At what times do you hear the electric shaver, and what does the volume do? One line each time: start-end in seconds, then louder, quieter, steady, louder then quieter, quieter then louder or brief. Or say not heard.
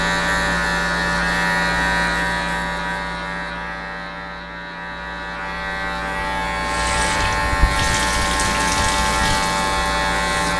0.0-10.5 quieter then louder.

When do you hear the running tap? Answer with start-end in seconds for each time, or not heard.
6.6-10.5.